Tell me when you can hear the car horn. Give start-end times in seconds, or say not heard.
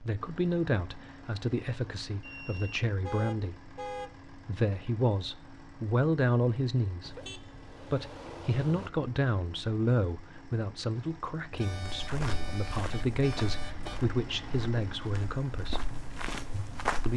3.0-4.1, 7.0-8.9, 11.5-14.0.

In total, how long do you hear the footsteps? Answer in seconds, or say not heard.
5 s.